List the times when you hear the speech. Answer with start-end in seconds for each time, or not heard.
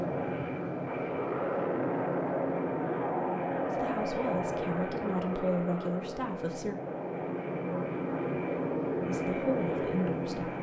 3.7-6.8, 9.0-10.5.